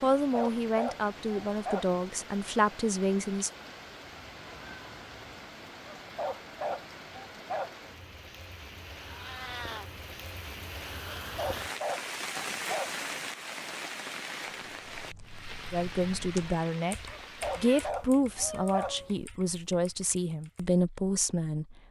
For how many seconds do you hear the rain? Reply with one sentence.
You can hear the rain for 18 seconds altogether.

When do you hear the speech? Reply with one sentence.
The speech can be heard from 0.0 to 3.5 s and from 15.7 to 21.8 s.